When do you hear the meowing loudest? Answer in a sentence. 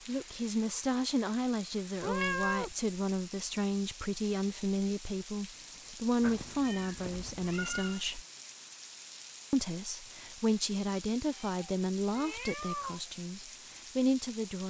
The volume of the meowing peaks at 2 seconds.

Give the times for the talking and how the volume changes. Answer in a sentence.
The talking can be heard from 0.1 to 8.2 s, at a steady volume; and from 9.5 to 14.6 s, getting quieter then louder.